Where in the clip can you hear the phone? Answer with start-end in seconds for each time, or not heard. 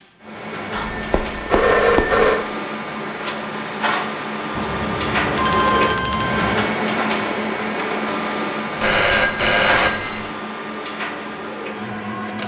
0.8-2.5, 4.5-6.5, 8.8-10.3.